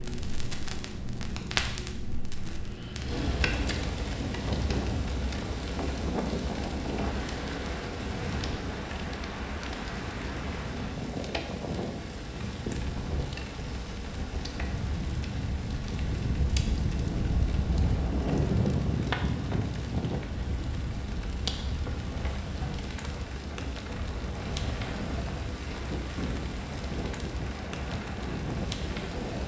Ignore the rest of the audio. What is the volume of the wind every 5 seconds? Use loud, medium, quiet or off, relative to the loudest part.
medium, medium, medium, loud, medium, medium.